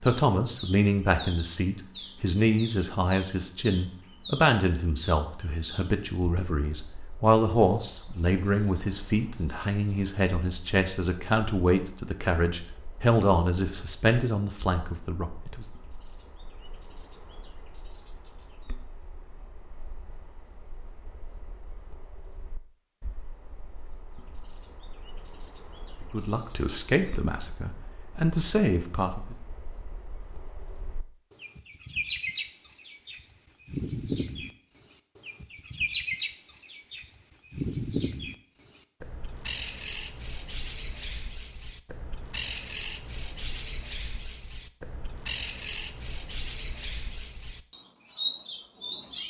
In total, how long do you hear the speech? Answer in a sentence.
The speech can be heard for 19 seconds in total.